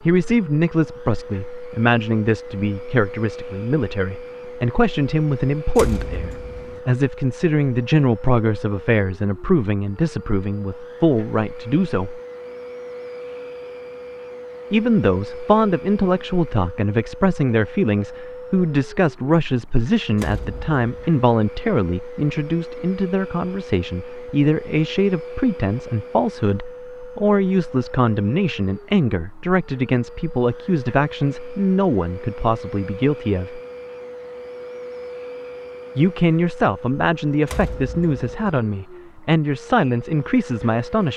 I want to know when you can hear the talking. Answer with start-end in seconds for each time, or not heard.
0.0-12.2, 14.7-33.6, 36.0-41.1.